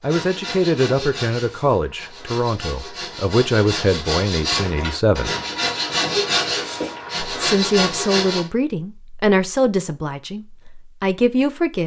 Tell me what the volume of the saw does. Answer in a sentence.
The loudness of the saw goes up.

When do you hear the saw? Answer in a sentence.
The saw can be heard from 0.0 to 8.4 s.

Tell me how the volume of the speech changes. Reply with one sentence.
The volume of the speech stays about the same.